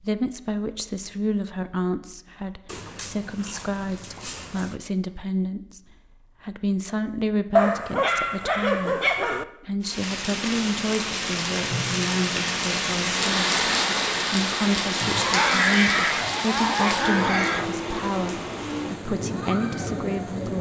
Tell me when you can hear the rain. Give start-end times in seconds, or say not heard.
9.8-20.5.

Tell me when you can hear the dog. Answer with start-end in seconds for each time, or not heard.
2.6-4.8, 7.5-9.4, 15.0-17.8.